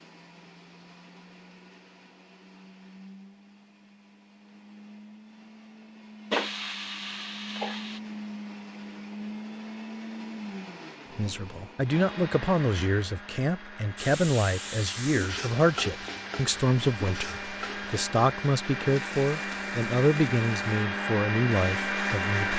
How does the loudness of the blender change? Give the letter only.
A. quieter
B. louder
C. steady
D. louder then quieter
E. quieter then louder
B.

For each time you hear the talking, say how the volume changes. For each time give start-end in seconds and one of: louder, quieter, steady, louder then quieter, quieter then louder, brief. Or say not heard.
11.2-22.5 steady.